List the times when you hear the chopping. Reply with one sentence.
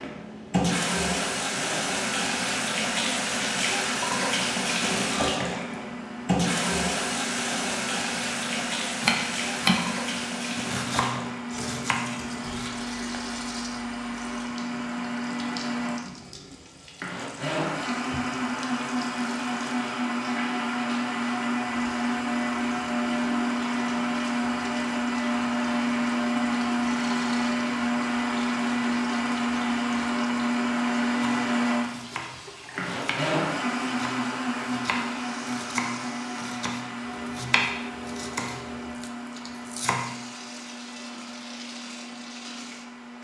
You can hear the chopping from 9.0 to 12.7 s and from 31.2 to 40.0 s.